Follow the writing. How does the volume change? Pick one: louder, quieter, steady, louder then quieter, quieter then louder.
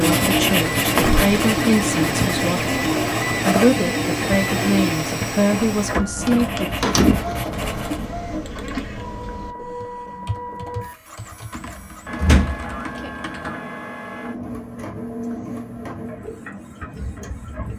quieter.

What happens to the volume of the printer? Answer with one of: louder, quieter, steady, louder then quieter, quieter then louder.
quieter.